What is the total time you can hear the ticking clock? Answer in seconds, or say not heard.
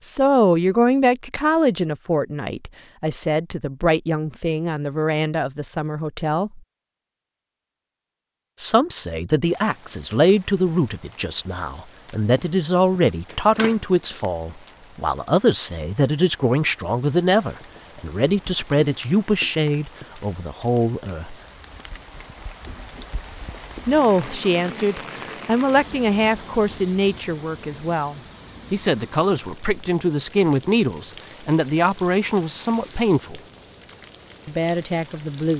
not heard.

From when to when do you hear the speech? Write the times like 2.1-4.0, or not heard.
0.0-6.6, 8.6-21.4, 23.9-33.4, 34.5-35.5.